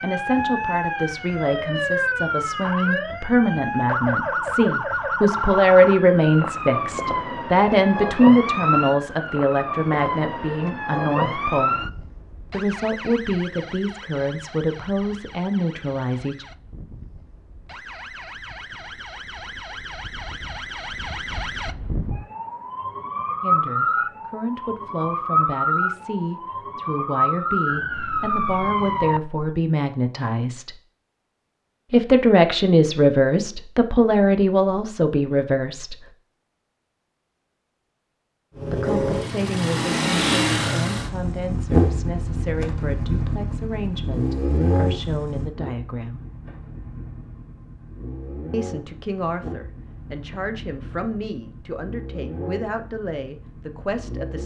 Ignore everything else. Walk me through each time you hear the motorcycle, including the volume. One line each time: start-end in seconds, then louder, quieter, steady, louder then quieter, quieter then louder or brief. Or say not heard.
38.5-54.4 quieter.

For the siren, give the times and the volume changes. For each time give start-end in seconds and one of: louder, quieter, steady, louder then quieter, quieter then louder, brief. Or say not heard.
0.0-29.4 quieter then louder.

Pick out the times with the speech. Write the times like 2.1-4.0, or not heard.
0.0-11.8, 12.5-16.4, 23.4-30.8, 31.9-36.1, 38.6-46.2, 48.5-54.4.